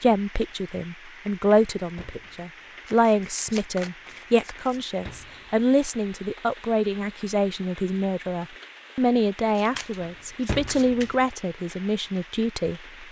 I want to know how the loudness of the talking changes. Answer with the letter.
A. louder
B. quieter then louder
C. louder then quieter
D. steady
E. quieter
D.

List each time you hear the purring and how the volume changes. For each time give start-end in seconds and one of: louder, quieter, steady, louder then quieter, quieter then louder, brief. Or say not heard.
not heard.